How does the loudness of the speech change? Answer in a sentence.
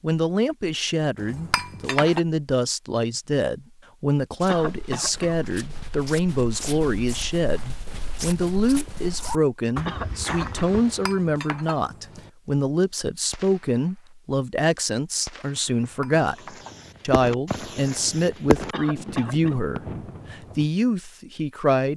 The loudness of the speech stays about the same.